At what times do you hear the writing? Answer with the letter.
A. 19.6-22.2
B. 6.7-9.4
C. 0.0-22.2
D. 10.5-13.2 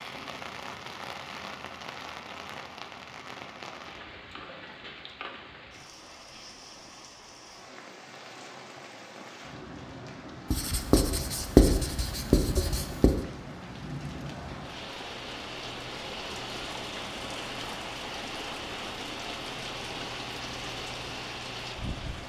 D.